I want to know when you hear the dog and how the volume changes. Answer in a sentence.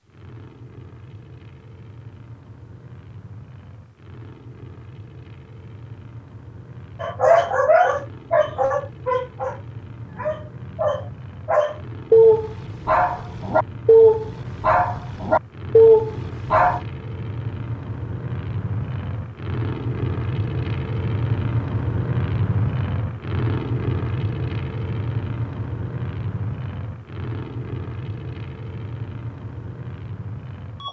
The dog can be heard from 7.0 to 16.8 s, getting quieter then louder.